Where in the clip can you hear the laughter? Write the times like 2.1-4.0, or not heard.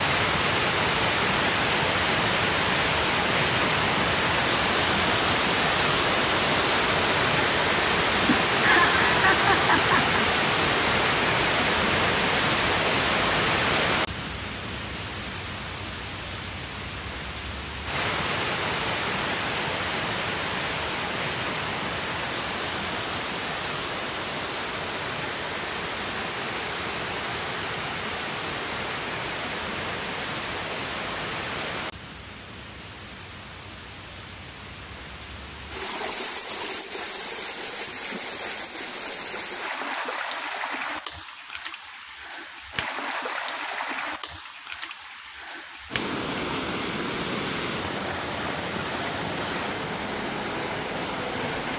8.2-10.2.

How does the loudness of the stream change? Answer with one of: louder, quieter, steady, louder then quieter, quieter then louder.
quieter.